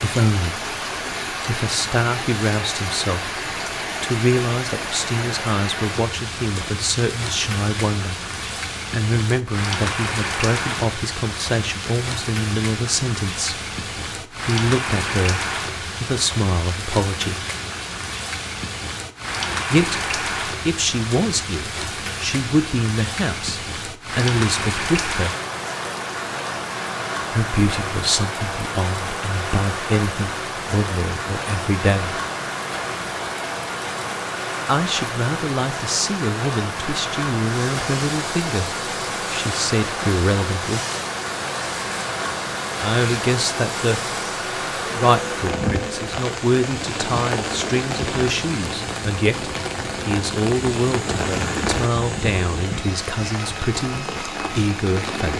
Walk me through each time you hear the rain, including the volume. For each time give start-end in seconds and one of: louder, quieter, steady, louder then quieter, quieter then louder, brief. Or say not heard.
0.0-55.3 steady.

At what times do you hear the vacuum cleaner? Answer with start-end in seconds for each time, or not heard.
37.5-55.3.